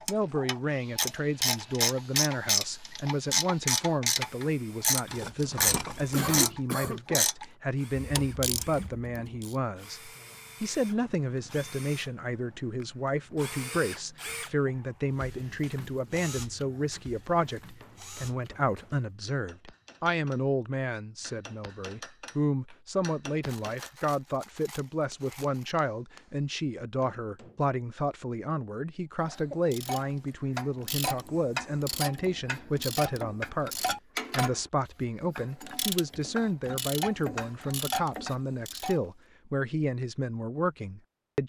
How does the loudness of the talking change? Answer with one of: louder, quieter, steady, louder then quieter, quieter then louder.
steady.